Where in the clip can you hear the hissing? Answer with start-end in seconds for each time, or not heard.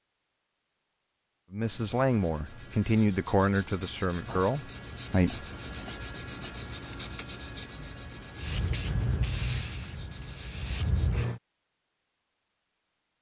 8.3-11.4.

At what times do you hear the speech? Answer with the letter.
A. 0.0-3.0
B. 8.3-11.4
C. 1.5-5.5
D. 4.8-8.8
C.